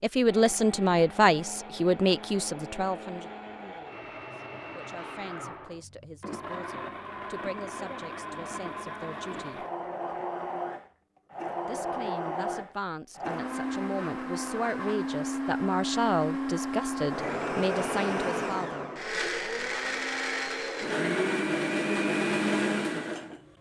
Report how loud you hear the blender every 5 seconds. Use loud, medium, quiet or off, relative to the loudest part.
quiet, medium, medium, loud, loud.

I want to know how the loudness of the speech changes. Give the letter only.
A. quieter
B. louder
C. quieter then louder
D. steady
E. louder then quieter
C.